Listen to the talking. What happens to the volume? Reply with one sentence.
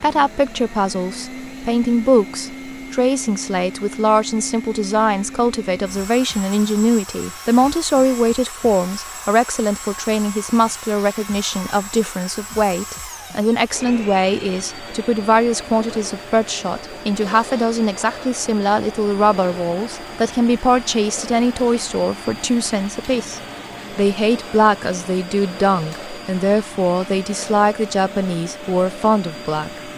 The loudness of the talking stays about the same.